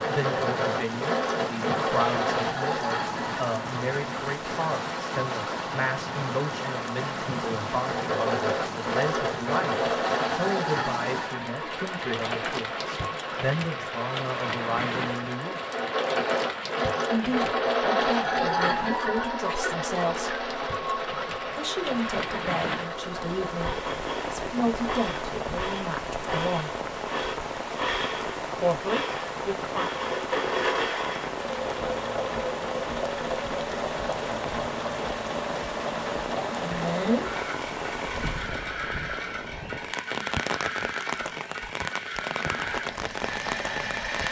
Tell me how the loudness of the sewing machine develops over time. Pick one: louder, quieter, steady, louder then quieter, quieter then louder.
steady.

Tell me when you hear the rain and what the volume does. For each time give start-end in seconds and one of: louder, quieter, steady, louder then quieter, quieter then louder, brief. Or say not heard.
0.0-44.2 steady.